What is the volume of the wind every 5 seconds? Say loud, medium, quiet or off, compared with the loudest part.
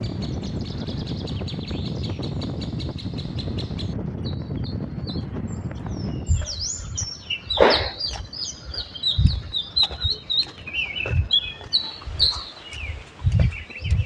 loud, medium, quiet.